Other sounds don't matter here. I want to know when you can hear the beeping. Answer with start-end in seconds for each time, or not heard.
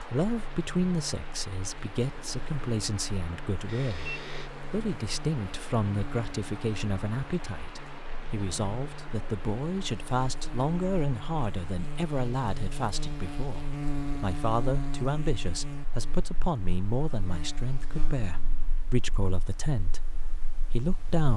3.6-4.5.